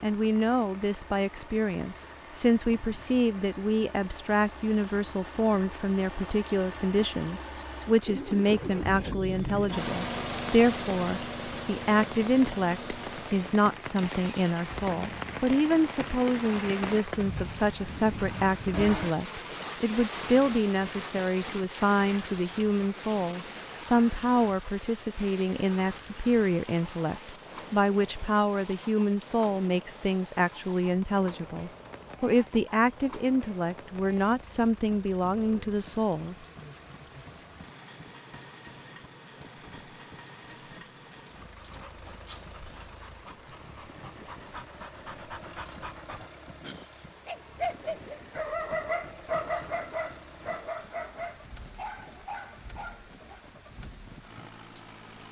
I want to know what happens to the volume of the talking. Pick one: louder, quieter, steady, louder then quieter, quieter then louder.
steady.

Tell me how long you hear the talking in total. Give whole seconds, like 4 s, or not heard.
36 s.